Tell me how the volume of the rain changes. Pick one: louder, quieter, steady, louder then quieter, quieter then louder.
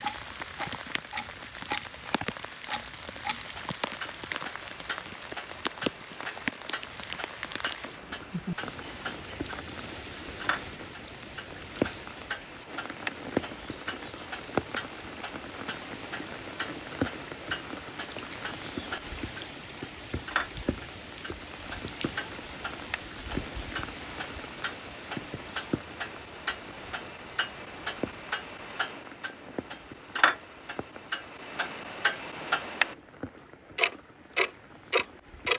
quieter.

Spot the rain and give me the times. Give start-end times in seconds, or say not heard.
0.0-35.5.